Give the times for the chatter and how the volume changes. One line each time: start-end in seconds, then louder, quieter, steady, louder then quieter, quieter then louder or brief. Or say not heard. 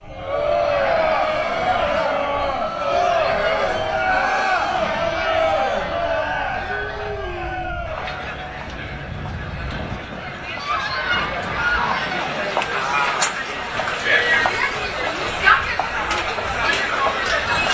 0.1-17.6 quieter then louder.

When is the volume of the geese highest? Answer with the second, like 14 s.
12 s.